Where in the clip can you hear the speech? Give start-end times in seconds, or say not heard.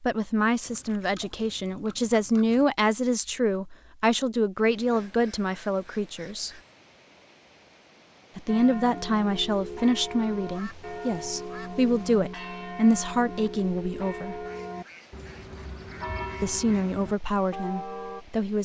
0.0-6.5, 8.3-14.4, 16.4-18.6.